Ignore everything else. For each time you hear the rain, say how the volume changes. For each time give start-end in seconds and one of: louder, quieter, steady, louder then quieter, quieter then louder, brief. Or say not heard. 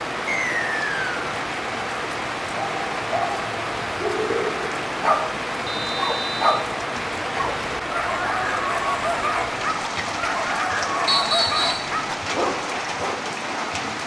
0.0-14.0 steady.